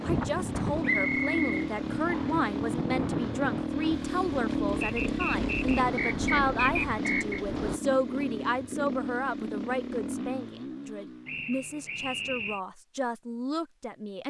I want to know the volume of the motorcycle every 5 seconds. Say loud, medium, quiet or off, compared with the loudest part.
loud, loud, medium.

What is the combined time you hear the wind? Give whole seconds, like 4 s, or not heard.
8 s.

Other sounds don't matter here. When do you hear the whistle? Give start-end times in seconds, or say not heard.
0.8-2.5, 4.8-7.4, 11.2-12.6.